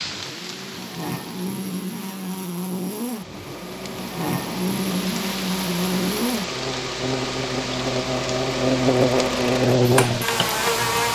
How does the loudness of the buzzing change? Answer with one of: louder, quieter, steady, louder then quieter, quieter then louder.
louder.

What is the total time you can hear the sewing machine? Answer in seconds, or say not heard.
8 s.